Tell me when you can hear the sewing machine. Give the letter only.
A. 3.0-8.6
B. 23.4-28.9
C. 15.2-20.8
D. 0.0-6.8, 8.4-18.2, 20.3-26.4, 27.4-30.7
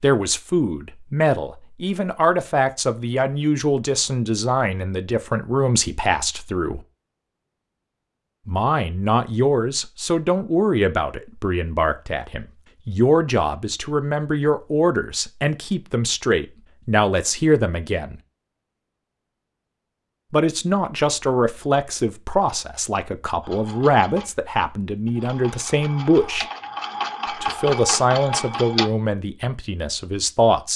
B.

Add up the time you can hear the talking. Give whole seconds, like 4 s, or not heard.
26 s.